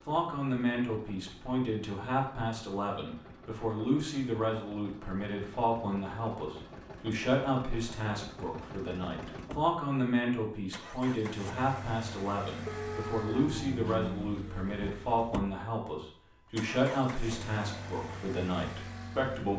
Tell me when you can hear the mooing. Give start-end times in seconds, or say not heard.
12.7-14.4.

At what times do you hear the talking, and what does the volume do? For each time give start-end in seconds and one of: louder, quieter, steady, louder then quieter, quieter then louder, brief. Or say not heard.
0.1-19.5 steady.